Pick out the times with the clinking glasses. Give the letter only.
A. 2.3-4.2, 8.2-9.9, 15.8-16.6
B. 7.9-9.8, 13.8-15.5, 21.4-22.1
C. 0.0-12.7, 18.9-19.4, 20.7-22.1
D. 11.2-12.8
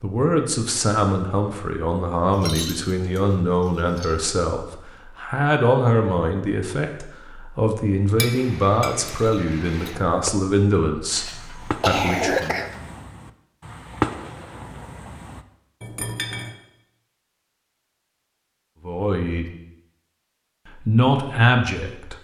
A.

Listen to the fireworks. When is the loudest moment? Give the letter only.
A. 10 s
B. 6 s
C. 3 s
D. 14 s
D.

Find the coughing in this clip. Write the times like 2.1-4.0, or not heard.
11.2-12.8.